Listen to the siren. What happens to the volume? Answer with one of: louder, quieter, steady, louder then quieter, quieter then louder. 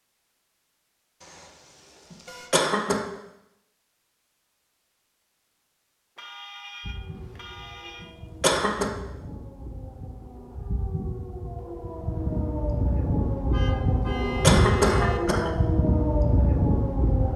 louder.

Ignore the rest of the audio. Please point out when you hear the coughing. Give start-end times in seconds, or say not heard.
2.1-3.0, 8.0-8.9, 14.4-15.5.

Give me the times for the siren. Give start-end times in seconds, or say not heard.
6.8-17.3.